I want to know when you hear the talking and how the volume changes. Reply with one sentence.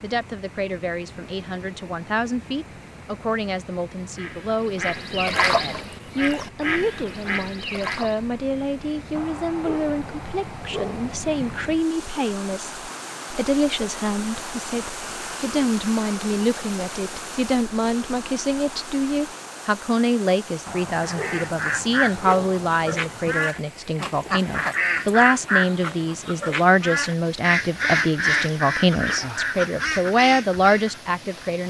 You can hear the talking from 0.0 to 31.6 s, getting louder.